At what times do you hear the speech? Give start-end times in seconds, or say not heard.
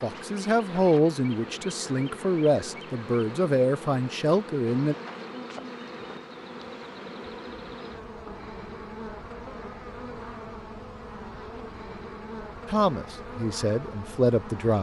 0.0-5.0, 12.7-14.7.